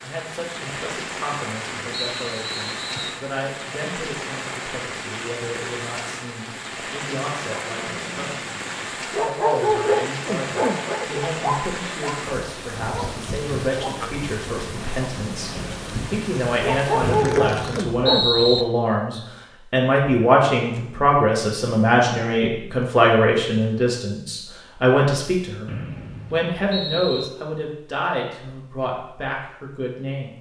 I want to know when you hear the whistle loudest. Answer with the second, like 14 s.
18 s.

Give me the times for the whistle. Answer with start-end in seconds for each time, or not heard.
1.9-3.2, 17.0-18.6, 25.6-27.3.